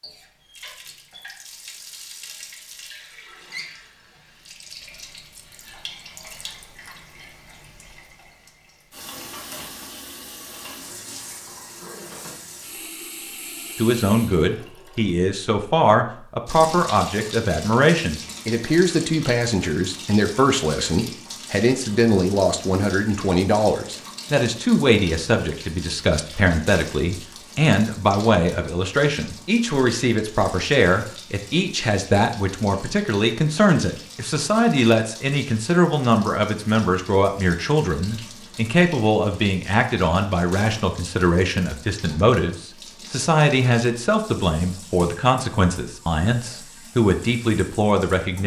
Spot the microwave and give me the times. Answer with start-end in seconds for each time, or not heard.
not heard.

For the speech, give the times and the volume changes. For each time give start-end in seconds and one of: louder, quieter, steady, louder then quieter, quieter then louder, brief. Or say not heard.
13.8-48.4 steady.